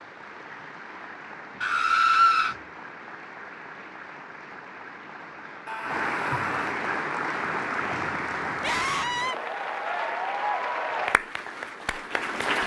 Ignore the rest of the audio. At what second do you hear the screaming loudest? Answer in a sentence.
The loudest moment of the screaming is at 2 seconds.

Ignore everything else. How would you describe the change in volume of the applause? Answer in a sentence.
The loudness of the applause goes up.